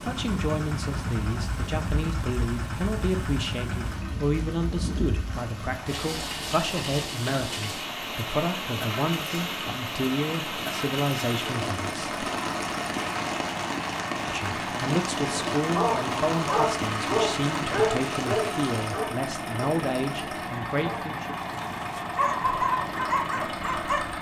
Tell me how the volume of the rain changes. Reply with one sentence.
The loudness of the rain goes up.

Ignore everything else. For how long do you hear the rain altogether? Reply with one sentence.
You can hear the rain for 19 seconds altogether.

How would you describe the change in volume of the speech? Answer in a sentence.
The loudness of the speech stays about the same.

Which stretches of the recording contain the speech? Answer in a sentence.
You can hear the speech from 0.0 to 12.1 s and from 14.2 to 21.4 s.